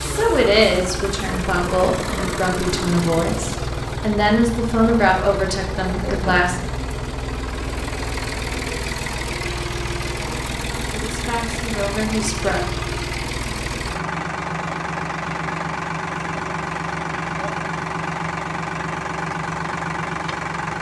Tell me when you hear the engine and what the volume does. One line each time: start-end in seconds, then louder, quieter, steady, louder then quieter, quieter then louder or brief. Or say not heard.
0.0-20.7 steady.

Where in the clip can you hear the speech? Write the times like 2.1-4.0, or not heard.
0.1-6.6, 10.9-12.7.